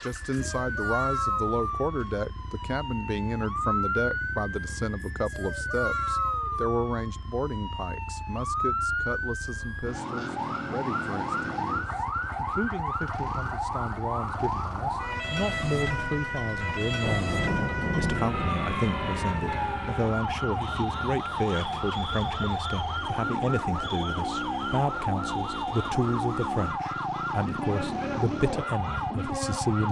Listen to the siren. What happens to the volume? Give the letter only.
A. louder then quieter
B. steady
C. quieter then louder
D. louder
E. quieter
B.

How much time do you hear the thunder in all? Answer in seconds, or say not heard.
3 s.